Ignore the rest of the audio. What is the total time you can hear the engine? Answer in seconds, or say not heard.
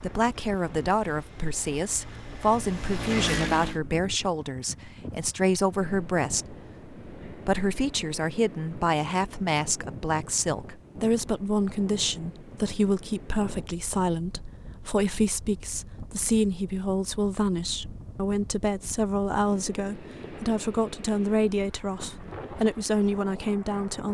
3 s.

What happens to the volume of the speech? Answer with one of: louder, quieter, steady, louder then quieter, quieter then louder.
steady.